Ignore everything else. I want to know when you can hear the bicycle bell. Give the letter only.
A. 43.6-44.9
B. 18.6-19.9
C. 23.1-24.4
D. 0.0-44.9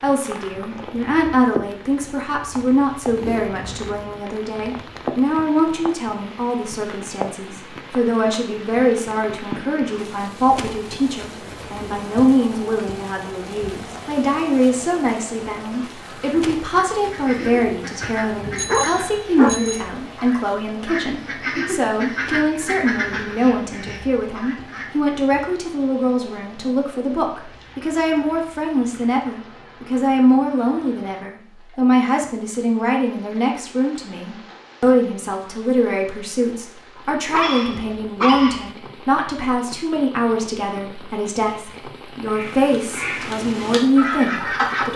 B.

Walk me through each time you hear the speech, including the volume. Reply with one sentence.
The speech can be heard from 0.0 to 44.9 s, at a steady volume.